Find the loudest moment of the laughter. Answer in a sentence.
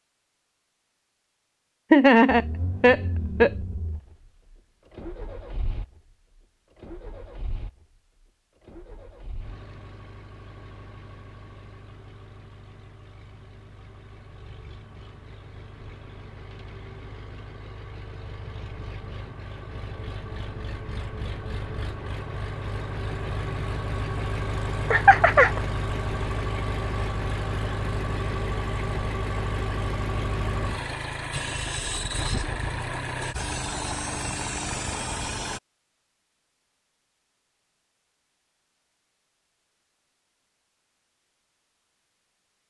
The volume of the laughter peaks at 2 seconds.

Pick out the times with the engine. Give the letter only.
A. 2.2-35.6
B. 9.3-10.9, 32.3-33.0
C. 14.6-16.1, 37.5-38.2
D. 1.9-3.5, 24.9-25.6
A.